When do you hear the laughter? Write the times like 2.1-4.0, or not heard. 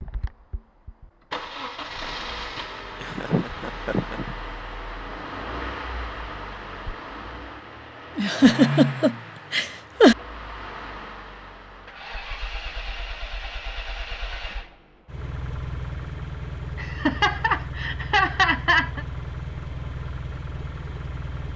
3.0-4.3, 8.2-10.2, 16.8-19.1.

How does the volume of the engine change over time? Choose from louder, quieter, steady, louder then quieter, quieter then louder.
steady.